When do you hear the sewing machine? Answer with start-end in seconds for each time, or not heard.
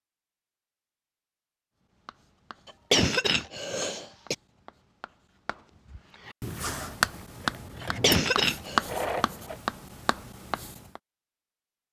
7.3-9.6.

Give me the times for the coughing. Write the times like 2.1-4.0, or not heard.
2.9-4.3, 7.8-8.8.